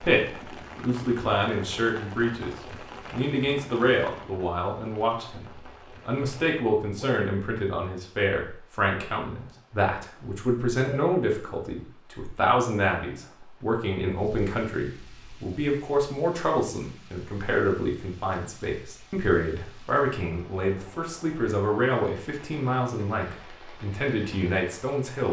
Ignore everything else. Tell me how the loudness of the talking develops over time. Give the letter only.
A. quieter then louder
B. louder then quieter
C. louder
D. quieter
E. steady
E.